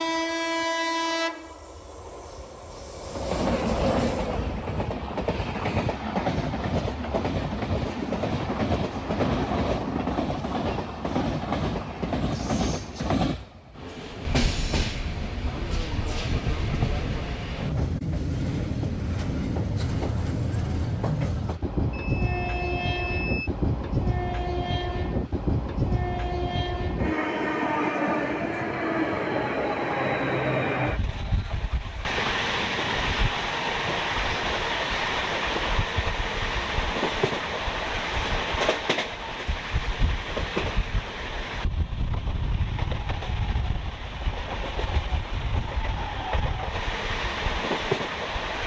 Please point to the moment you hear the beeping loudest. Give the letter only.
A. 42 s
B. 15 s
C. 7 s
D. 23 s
D.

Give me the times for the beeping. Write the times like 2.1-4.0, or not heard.
21.9-23.5.